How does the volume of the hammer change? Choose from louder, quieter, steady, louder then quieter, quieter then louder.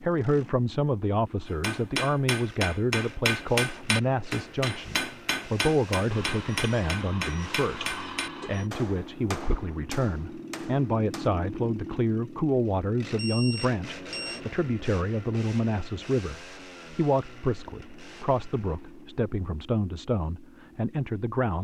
quieter.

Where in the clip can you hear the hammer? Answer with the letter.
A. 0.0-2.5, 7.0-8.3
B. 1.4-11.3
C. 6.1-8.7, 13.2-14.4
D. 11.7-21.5
B.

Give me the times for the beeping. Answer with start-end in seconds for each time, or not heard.
6.1-8.7, 13.2-14.4.